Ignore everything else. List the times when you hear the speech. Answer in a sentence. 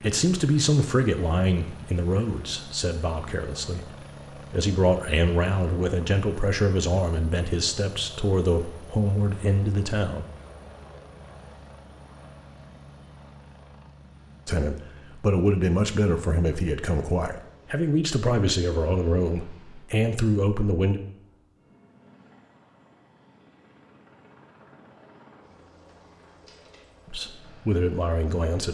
The speech can be heard from 0.0 to 10.2 s, from 14.4 to 21.0 s and from 27.1 to 28.6 s.